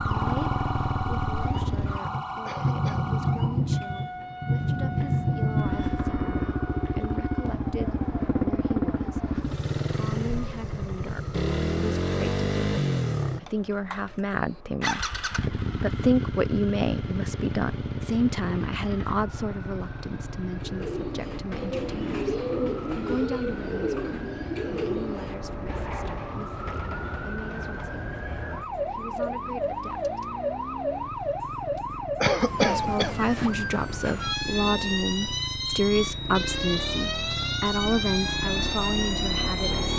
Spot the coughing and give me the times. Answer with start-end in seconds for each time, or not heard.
2.5-3.1, 32.2-33.1.